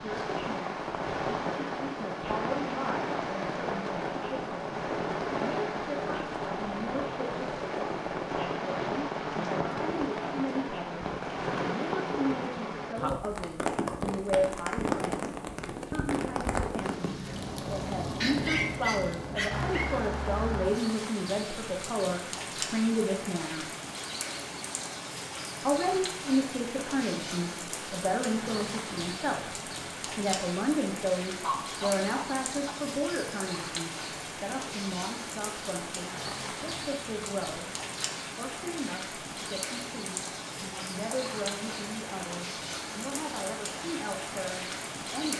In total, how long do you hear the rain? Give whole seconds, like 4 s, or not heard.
45 s.